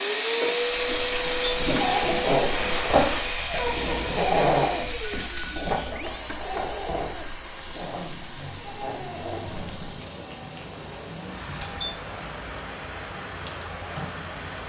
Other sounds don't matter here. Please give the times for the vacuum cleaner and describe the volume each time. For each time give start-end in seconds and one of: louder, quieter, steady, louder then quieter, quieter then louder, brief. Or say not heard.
0.0-14.6 quieter.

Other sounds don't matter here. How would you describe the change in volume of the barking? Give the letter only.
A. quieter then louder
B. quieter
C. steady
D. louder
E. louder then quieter
B.